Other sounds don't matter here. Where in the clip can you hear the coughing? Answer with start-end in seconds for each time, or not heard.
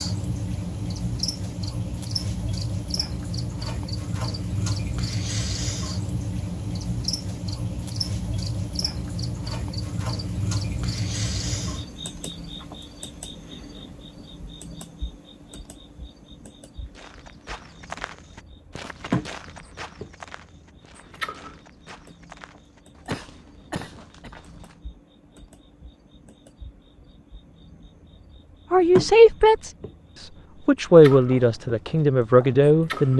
23.1-24.3.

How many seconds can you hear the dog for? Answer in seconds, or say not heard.
not heard.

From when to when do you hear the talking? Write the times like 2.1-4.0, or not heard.
28.7-29.7, 30.6-33.1.